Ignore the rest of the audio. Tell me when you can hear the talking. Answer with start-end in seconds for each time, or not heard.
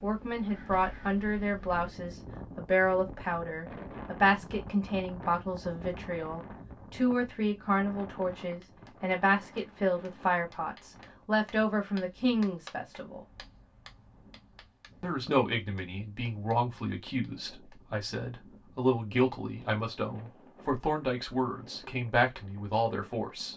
0.0-13.2, 15.0-23.5.